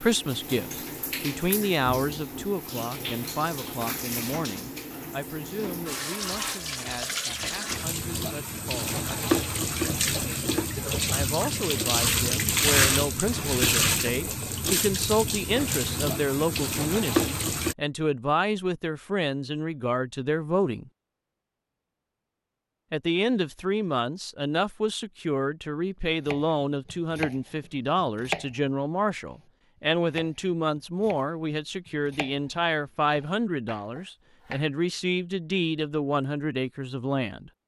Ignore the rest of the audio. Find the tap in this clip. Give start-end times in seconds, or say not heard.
0.0-17.8.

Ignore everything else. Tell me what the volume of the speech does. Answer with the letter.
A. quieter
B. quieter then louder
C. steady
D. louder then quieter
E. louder
C.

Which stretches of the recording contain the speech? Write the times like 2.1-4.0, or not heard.
0.0-9.0, 11.1-20.9, 22.9-37.5.